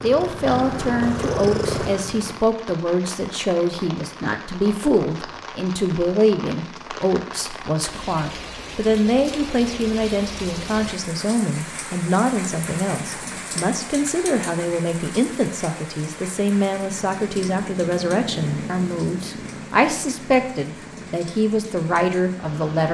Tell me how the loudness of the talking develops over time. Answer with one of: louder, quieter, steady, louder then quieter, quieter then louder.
steady.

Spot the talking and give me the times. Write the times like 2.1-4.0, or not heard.
0.0-22.8.